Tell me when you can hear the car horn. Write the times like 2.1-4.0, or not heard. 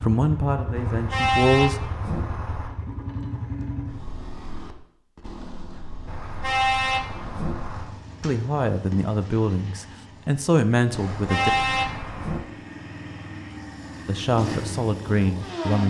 0.8-2.7, 6.0-8.0, 10.9-12.4.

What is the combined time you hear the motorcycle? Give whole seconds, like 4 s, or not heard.
16 s.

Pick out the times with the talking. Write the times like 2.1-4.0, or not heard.
0.0-1.8, 8.2-11.5, 14.1-15.8.